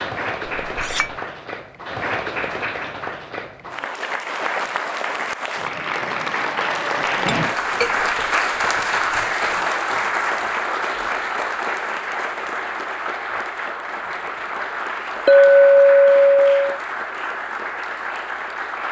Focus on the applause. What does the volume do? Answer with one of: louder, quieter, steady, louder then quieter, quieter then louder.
louder then quieter.